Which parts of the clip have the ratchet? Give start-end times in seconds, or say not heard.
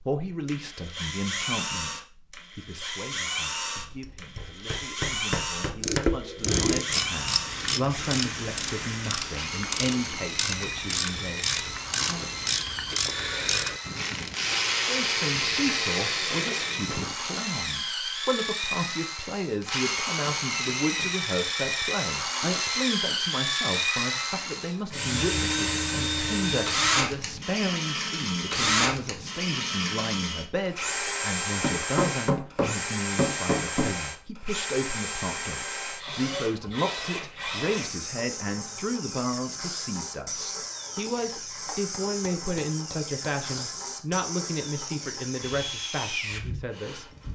5.8-17.1.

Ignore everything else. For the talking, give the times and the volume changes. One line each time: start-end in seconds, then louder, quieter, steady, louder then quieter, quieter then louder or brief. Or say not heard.
0.1-12.3 quieter then louder
14.8-47.0 steady.